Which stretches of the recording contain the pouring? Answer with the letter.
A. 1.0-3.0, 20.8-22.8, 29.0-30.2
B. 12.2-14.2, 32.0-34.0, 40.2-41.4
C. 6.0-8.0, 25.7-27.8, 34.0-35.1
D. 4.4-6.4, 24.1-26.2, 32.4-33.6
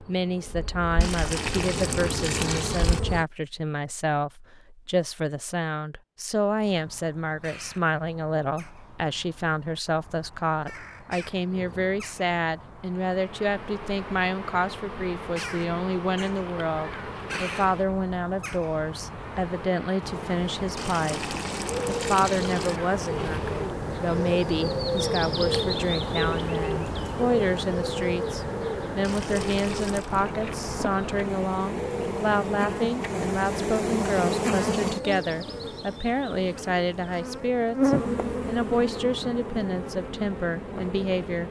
A.